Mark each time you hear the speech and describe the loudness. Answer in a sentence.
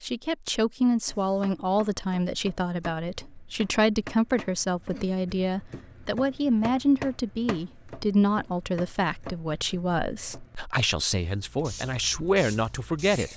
The speech can be heard from 0.0 to 13.3 s, at a steady volume.